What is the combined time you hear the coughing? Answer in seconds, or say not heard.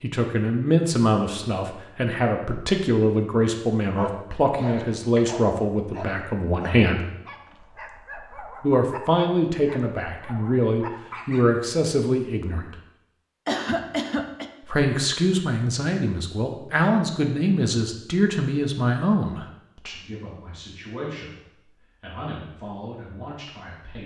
2 s.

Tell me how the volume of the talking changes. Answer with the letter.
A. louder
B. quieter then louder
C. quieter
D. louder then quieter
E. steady
C.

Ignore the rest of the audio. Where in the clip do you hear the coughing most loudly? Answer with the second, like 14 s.
14 s.